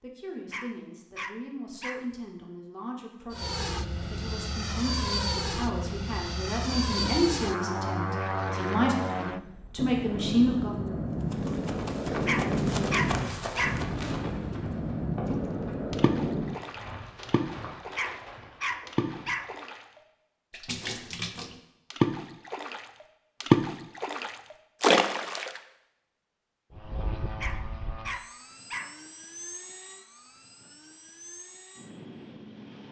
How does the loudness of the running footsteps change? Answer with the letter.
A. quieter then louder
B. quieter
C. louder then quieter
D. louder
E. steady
B.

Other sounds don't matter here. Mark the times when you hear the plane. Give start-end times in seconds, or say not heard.
3.3-16.6, 26.7-32.8.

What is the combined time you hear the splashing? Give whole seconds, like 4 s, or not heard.
8 s.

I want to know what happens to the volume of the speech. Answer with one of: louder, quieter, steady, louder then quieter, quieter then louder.
louder.